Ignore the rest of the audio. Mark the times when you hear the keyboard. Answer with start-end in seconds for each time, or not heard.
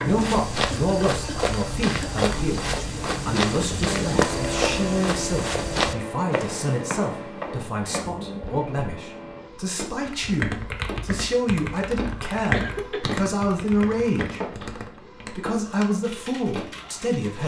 10.1-17.4.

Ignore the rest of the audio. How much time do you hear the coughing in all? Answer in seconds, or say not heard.
2 s.